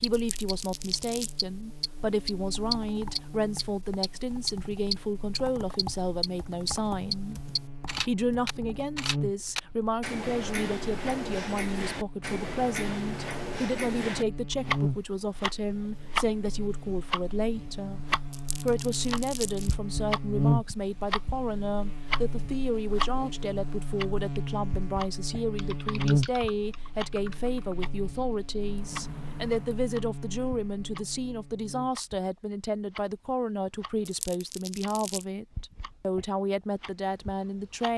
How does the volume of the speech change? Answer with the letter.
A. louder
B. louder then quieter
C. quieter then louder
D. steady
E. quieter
D.